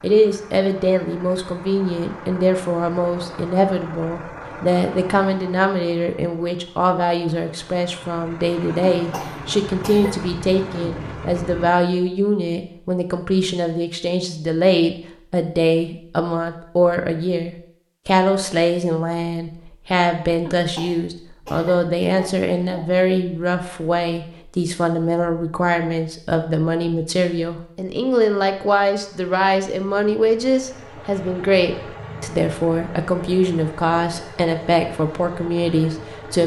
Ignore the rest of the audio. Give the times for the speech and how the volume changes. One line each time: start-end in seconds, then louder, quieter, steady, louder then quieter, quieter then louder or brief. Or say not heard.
0.0-36.4 steady.